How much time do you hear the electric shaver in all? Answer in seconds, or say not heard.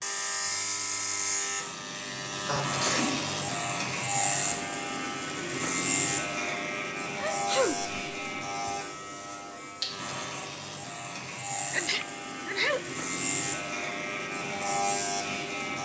16 s.